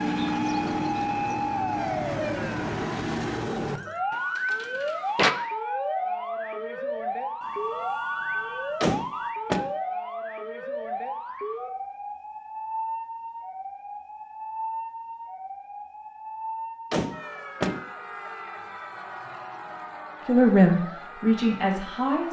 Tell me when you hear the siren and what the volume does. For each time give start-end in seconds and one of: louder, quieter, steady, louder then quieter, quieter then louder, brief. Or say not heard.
0.0-22.2 quieter.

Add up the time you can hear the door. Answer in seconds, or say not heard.
3 s.